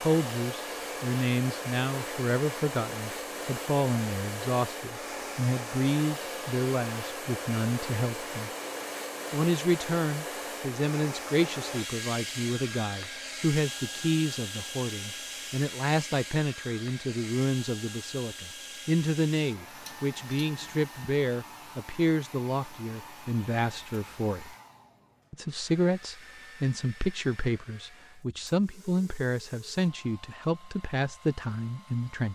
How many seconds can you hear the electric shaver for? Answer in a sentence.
The electric shaver can't be heard in this clip.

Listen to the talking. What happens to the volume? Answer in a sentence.
The volume of the talking stays about the same.